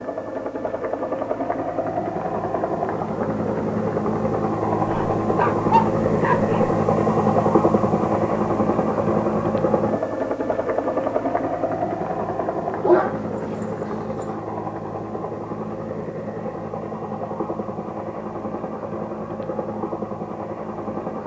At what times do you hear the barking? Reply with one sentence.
You can hear the barking from 4.8 to 6.7 s and from 12.8 to 13.7 s.